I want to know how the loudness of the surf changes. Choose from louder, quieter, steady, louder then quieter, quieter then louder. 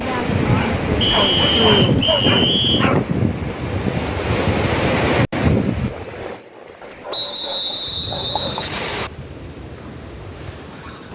quieter.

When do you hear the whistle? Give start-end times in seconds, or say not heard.
1.0-2.9, 7.1-9.1.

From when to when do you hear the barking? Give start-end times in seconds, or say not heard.
0.5-3.1, 6.8-8.7.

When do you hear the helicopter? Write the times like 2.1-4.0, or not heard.
not heard.